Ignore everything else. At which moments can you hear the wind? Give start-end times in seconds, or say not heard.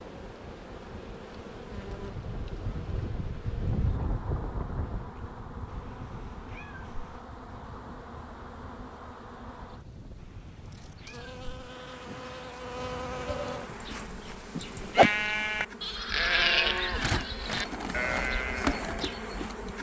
0.0-14.1.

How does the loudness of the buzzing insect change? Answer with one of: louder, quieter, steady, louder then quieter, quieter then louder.
louder.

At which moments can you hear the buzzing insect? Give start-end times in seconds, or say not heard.
0.0-19.7.